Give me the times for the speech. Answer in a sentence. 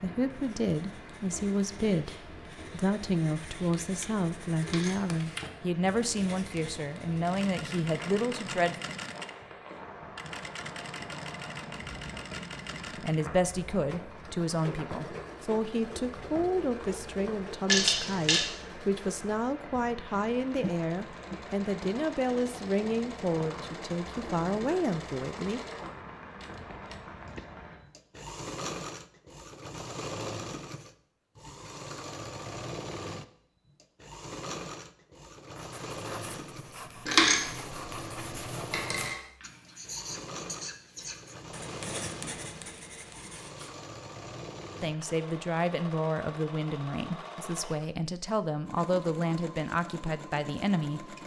You can hear the speech from 0.0 to 8.8 s, from 13.0 to 25.6 s and from 44.8 to 51.1 s.